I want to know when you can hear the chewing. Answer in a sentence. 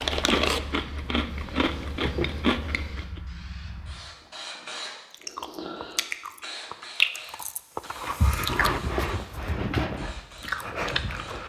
The chewing can be heard from 0.0 to 3.2 s and from 5.1 to 11.4 s.